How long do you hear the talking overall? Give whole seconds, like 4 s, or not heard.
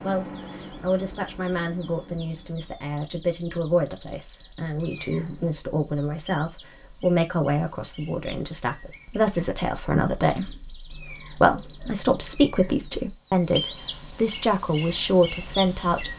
16 s.